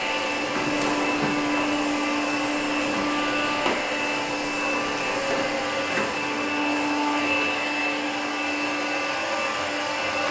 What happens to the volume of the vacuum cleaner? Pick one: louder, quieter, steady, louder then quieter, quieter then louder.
steady.